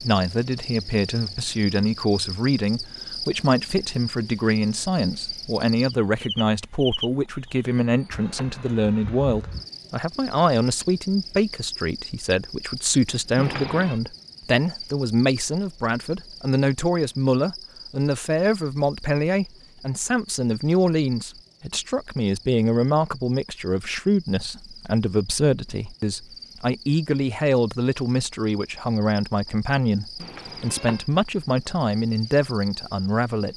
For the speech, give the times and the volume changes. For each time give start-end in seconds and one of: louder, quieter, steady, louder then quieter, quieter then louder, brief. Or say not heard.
0.0-33.5 steady.